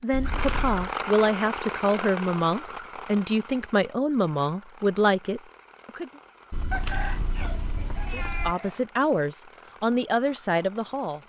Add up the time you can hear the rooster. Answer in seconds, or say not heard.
2 s.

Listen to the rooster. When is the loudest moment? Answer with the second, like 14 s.
7 s.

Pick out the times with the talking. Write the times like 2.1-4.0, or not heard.
0.0-6.1, 8.1-11.2.